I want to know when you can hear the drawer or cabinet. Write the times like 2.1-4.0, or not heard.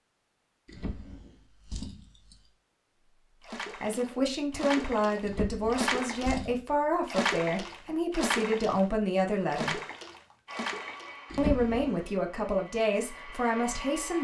0.7-2.4, 5.2-6.6, 11.3-12.1.